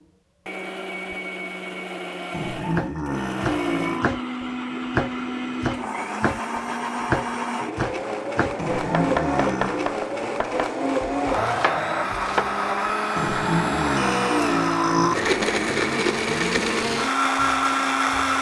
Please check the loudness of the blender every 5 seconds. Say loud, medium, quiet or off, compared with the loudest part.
medium, medium, loud, loud.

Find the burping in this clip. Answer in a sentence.
You can hear the burping from 2.3 to 4.2 s, from 8.6 to 10.0 s and from 13.2 to 15.2 s.